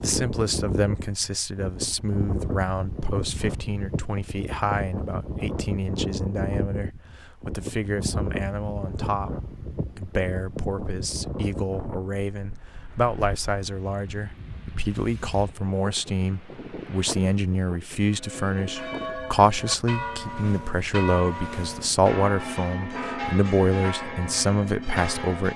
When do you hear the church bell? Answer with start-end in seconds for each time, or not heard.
18.1-25.5.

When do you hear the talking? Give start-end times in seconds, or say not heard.
0.0-25.5.